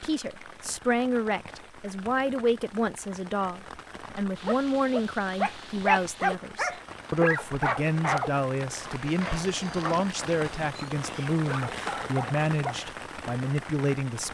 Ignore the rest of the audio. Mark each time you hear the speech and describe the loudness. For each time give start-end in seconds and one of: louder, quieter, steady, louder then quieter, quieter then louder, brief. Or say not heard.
0.0-14.2 steady.